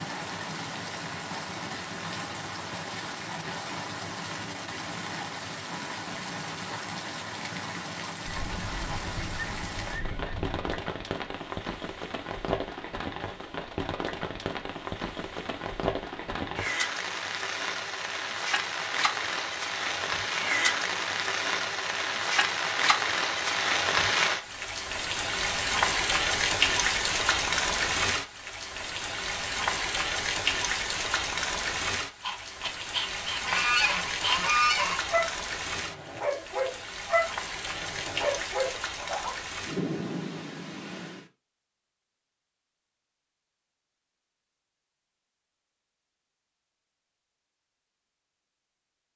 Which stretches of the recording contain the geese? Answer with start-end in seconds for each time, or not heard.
8.2-10.8, 33.3-35.0.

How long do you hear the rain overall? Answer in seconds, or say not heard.
41 s.